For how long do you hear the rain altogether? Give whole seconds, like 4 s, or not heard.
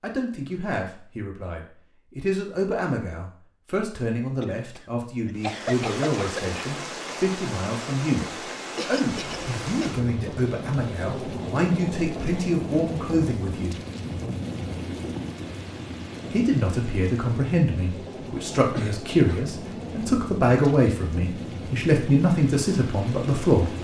18 s.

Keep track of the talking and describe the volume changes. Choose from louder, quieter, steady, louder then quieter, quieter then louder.
louder.